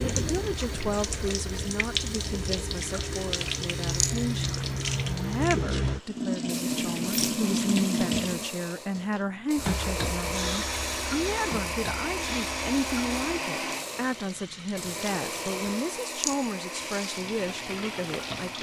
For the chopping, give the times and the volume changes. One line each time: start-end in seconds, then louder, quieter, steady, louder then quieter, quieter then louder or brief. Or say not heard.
not heard.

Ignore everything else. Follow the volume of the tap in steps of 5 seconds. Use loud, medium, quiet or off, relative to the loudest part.
loud, loud, medium, medium.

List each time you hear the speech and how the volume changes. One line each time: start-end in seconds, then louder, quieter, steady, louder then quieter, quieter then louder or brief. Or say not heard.
0.1-18.5 steady.